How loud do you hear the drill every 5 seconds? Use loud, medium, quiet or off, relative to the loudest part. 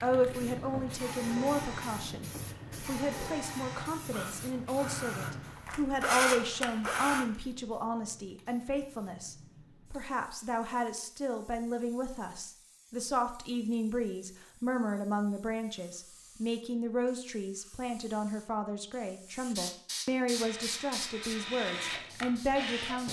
medium, loud, off, off, medium.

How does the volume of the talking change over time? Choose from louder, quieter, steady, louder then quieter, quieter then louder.
steady.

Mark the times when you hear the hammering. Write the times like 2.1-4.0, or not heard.
not heard.